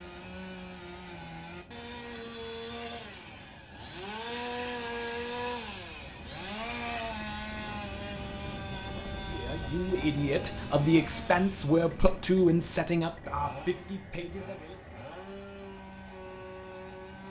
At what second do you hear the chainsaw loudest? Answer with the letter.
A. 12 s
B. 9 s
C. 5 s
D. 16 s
C.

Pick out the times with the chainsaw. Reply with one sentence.
You can hear the chainsaw from 0.0 to 17.2 s.